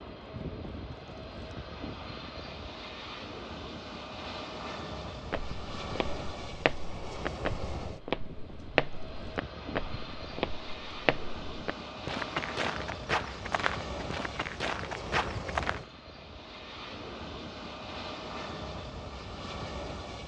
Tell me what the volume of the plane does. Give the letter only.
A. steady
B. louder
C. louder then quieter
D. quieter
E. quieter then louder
A.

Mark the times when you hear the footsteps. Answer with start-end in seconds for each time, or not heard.
5.3-15.8.